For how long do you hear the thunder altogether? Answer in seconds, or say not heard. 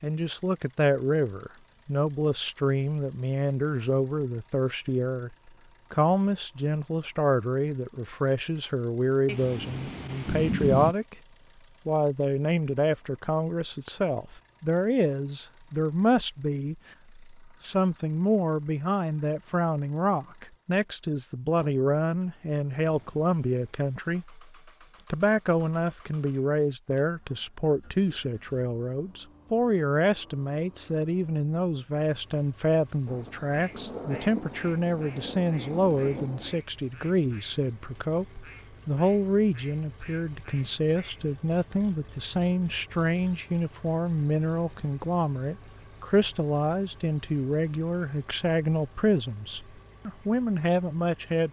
5 s.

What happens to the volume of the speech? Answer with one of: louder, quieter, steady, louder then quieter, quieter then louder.
steady.